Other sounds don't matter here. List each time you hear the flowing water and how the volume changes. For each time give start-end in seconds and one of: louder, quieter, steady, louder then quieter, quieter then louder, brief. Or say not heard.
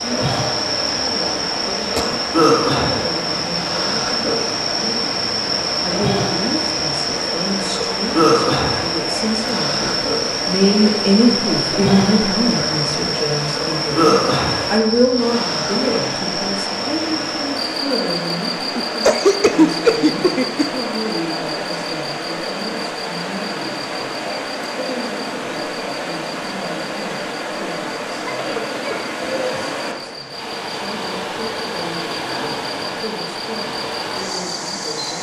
0.0-35.1 steady.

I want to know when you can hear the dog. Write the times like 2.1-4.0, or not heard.
not heard.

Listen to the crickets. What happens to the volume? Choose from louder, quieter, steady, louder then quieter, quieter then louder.
quieter.